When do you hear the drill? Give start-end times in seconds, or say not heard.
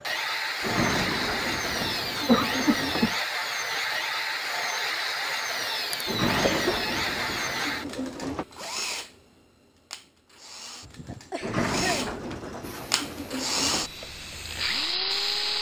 0.0-15.5.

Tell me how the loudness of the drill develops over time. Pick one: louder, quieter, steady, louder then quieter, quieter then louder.
quieter then louder.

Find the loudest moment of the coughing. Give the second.
2 s.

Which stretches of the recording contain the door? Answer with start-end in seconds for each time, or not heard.
0.6-3.1, 6.0-8.4, 11.4-13.9.